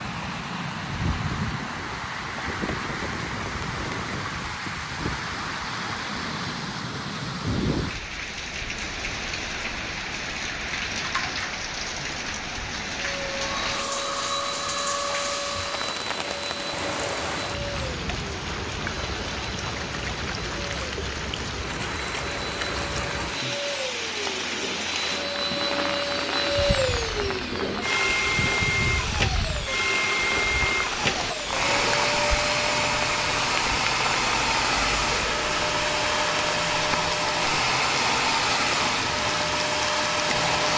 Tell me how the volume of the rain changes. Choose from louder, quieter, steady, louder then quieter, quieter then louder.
steady.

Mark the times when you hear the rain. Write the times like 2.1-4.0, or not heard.
0.0-40.7.